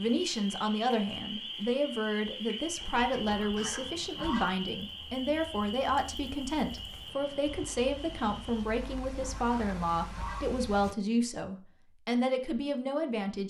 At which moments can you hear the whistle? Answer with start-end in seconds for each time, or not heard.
not heard.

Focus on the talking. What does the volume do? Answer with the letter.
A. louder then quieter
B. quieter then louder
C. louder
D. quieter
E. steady
E.